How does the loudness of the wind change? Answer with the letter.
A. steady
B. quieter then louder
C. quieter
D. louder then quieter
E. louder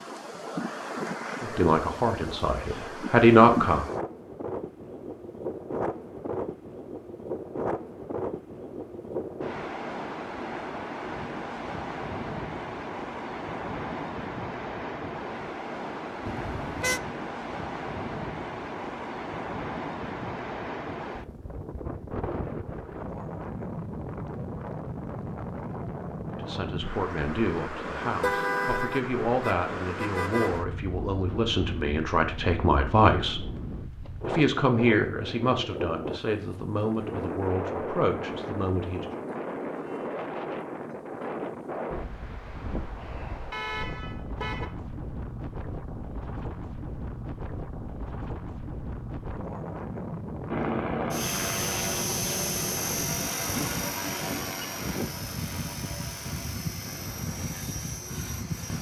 A.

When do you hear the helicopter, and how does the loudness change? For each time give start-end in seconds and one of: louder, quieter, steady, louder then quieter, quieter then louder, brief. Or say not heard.
50.5-58.7 quieter.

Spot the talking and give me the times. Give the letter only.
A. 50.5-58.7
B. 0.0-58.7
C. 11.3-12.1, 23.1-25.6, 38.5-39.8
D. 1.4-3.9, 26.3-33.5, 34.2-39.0
D.